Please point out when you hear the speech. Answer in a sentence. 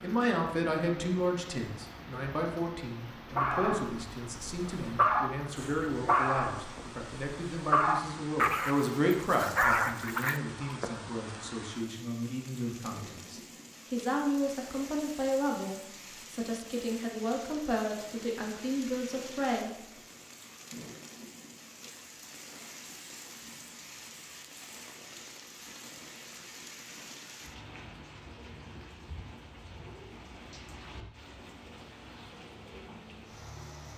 The speech can be heard from 0.0 to 19.8 s.